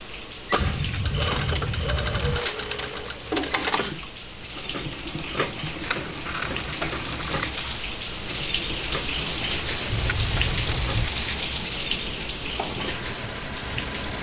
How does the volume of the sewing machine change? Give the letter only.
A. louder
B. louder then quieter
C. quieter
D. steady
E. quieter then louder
C.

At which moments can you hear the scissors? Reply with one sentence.
The scissors can be heard from 0.6 to 2.5 s, from 5.8 to 7.8 s and from 9.9 to 11.2 s.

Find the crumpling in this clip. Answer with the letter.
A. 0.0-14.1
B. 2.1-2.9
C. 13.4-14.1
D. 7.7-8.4
B.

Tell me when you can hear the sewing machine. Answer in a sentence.
You can hear the sewing machine from 0.0 to 14.1 s.